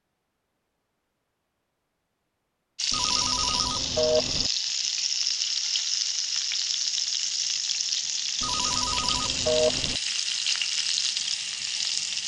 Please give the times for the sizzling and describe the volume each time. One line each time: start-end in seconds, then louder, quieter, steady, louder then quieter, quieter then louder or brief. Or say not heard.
2.8-12.2 steady.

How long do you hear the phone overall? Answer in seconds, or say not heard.
3 s.